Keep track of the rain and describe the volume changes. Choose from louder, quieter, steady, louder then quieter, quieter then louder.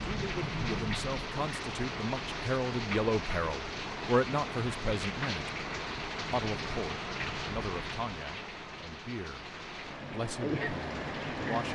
steady.